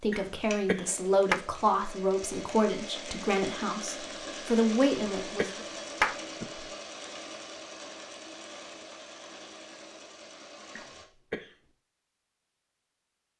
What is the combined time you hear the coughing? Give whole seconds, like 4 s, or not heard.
4 s.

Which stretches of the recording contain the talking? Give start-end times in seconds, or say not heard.
0.0-5.6.